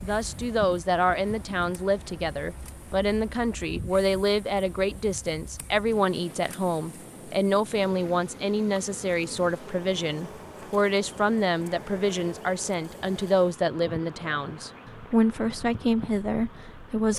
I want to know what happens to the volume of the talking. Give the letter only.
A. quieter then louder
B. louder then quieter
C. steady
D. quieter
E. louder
C.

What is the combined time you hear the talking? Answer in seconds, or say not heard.
17 s.